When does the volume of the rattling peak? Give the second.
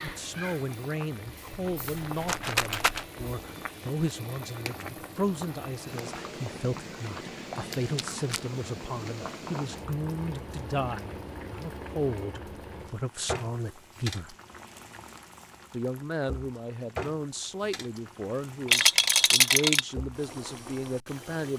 19 s.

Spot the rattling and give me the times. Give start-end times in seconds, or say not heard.
1.5-3.0, 7.7-8.4, 18.6-19.9.